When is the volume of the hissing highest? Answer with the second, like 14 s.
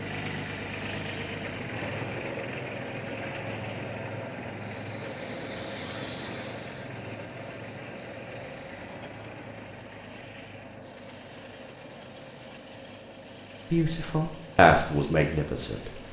6 s.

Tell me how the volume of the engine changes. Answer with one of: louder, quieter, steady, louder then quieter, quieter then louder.
quieter.